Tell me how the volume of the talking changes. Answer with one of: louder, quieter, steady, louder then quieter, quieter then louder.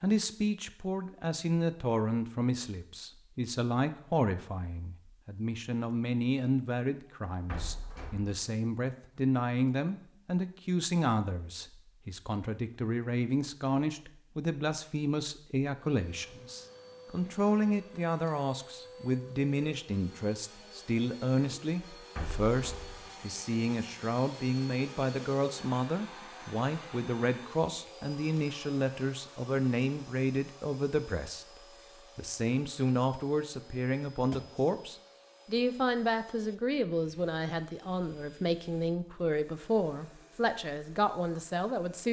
steady.